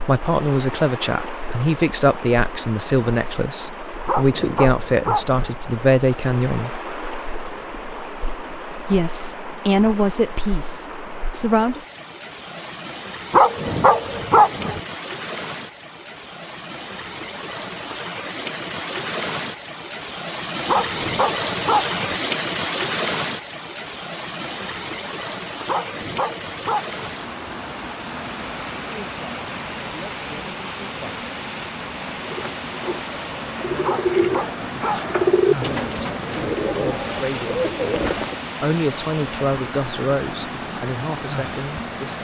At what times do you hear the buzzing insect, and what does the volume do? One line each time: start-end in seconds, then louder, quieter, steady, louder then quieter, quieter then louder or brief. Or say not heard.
not heard.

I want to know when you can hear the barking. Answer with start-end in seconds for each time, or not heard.
4.0-5.5, 13.3-14.8, 20.6-22.1, 25.6-27.1, 33.8-35.0.